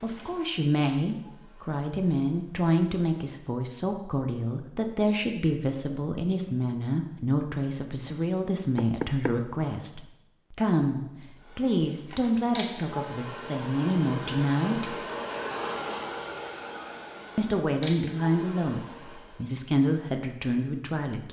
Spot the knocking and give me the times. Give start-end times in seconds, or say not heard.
8.8-9.4.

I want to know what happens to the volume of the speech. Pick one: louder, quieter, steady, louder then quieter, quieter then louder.
steady.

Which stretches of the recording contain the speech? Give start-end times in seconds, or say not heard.
0.0-14.9, 17.4-21.2.